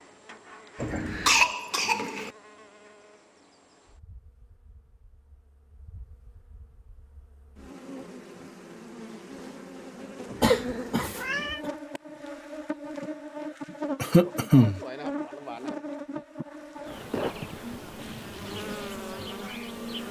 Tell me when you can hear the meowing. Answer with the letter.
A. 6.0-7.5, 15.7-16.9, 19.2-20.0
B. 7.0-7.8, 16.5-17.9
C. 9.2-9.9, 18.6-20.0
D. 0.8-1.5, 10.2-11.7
D.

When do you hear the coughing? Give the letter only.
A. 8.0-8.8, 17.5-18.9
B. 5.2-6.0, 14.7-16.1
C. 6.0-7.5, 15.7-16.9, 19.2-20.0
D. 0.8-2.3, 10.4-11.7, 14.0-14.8
D.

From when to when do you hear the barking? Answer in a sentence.
You can't hear the barking here.